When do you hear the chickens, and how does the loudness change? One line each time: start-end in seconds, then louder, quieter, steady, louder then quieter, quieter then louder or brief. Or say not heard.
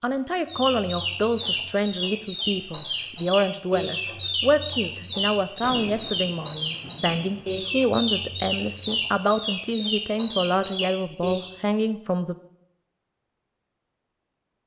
0.5-11.5 steady.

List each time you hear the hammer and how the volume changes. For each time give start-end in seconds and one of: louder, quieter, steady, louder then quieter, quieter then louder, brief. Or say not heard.
not heard.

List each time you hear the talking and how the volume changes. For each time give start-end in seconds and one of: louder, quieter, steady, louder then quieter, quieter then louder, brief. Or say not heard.
0.0-12.3 steady.